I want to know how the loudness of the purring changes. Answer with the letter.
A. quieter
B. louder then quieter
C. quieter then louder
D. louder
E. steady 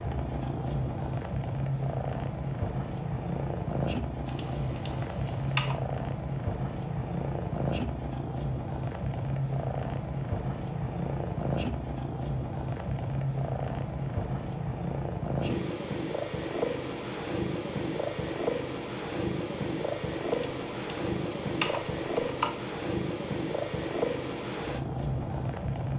E.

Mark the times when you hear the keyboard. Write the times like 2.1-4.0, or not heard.
4.2-5.8, 20.3-22.6.